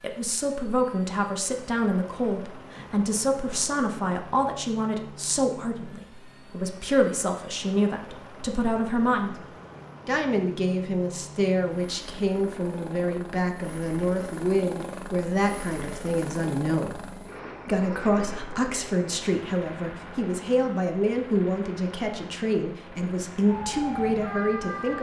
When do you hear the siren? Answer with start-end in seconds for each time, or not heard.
23.4-24.9.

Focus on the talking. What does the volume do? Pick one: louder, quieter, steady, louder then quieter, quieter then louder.
steady.